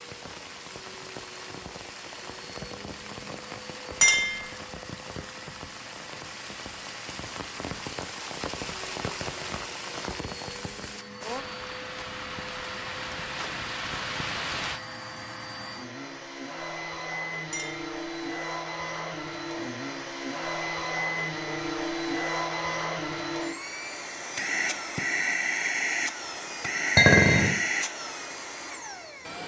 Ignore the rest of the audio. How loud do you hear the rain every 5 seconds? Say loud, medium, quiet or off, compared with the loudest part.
medium, loud, loud, off, off, off.